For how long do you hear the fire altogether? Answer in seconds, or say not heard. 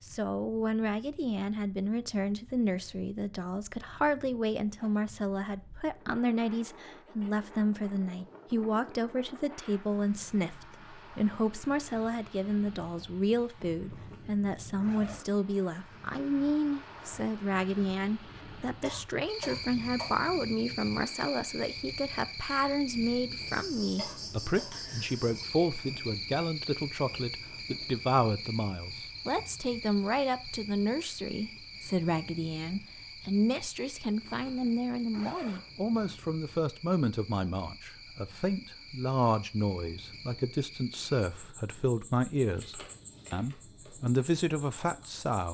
not heard.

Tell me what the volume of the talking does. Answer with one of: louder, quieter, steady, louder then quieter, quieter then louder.
steady.